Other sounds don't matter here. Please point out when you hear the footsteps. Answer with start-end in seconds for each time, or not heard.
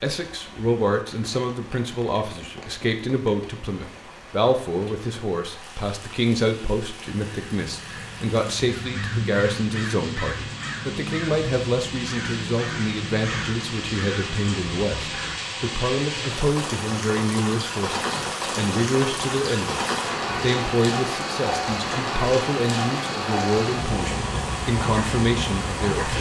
not heard.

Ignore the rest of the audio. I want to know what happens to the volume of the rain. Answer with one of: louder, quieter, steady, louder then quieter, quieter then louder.
louder.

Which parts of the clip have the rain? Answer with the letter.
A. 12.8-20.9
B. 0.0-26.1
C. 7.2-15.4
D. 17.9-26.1
B.